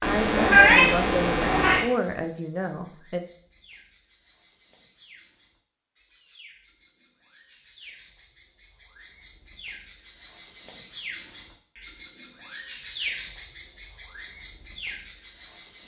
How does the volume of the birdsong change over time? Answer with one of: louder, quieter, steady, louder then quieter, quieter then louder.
louder.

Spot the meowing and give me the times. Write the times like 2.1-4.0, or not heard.
0.0-1.9.